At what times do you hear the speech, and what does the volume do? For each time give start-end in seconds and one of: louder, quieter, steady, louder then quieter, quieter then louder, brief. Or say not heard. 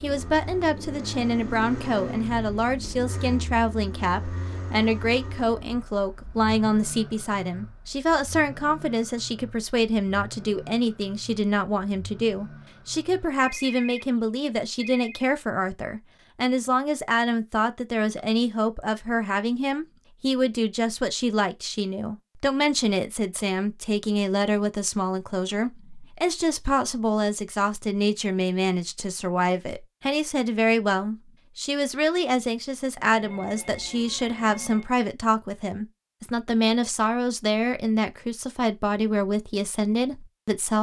0.0-40.7 steady.